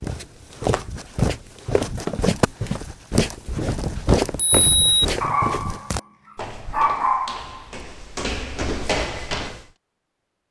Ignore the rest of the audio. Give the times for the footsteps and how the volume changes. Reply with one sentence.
The footsteps can be heard from 0.0 to 9.7 s, getting quieter then louder.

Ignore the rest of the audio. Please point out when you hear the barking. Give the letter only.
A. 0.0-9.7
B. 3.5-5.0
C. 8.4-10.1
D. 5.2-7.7
D.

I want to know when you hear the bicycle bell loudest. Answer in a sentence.
The loudest moment of the bicycle bell is at 5 seconds.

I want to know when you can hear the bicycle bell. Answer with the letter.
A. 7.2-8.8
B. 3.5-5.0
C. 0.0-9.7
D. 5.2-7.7
B.